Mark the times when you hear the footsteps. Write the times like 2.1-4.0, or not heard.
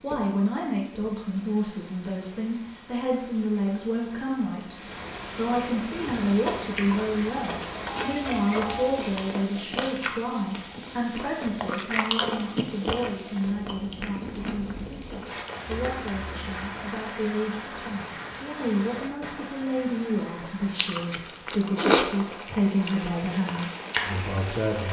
not heard.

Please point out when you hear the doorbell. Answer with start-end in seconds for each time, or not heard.
7.7-9.0.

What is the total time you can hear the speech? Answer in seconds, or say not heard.
24 s.